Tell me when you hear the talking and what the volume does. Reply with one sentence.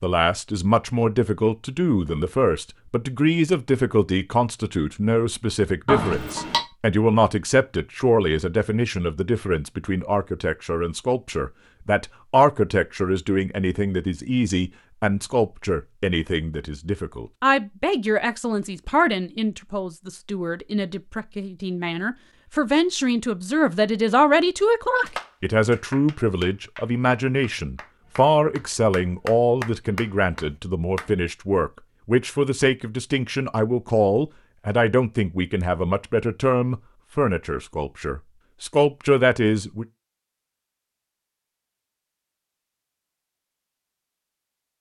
You can hear the talking from 0.0 to 39.9 s, at a steady volume.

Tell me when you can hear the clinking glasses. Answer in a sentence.
The clinking glasses can be heard from 5.8 to 6.6 s.